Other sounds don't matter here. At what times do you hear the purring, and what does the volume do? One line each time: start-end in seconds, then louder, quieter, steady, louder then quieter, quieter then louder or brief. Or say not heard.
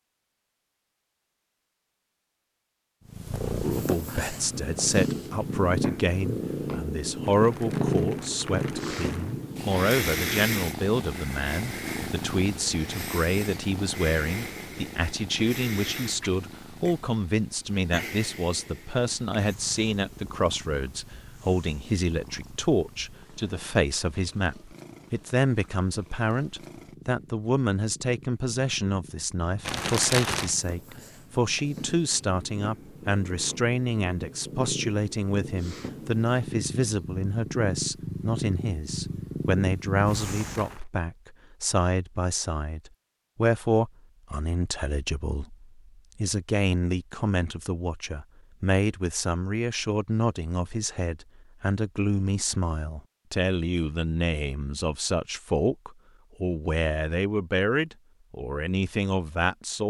3.0-40.8 quieter then louder.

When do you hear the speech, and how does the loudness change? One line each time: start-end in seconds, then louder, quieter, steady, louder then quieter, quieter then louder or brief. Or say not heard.
3.6-59.8 steady.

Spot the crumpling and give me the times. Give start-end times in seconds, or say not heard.
7.2-9.3, 29.6-30.6, 40.2-40.9.